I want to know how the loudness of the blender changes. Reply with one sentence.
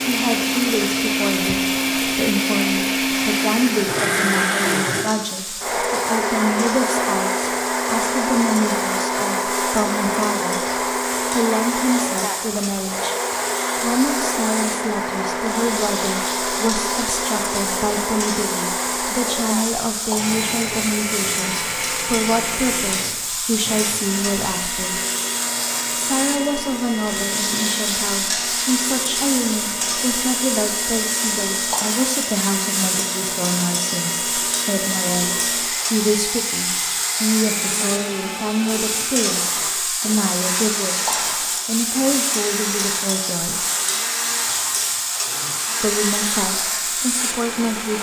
The loudness of the blender goes down.